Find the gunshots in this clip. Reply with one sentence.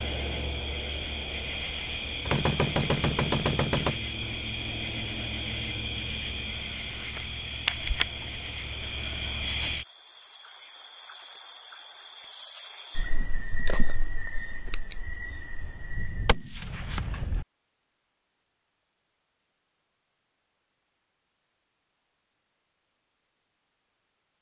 You can hear the gunshots from 2.2 to 4.0 s and from 15.6 to 17.4 s.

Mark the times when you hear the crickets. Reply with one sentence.
The crickets can be heard from 0.0 to 16.6 s.